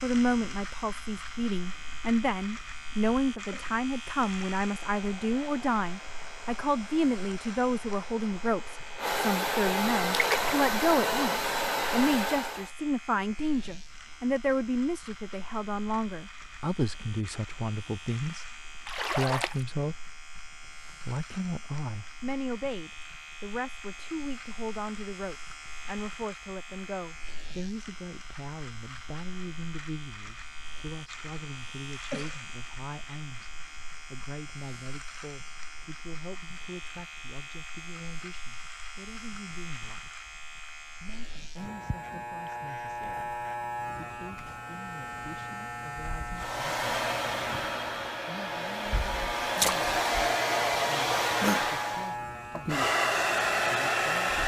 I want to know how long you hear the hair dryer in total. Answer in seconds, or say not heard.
16 s.